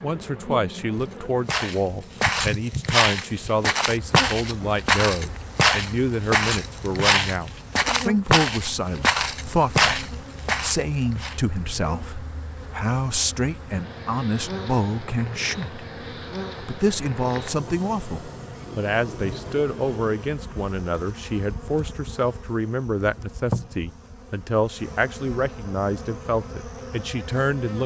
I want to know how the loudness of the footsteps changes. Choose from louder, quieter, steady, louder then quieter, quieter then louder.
steady.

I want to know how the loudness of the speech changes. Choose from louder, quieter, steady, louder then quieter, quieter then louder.
steady.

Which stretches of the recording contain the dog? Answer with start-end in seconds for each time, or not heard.
not heard.